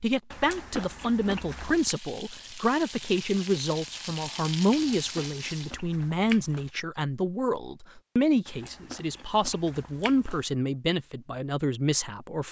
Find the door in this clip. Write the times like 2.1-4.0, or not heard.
not heard.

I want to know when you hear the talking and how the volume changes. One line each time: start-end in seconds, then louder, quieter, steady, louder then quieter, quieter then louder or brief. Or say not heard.
0.0-12.4 steady.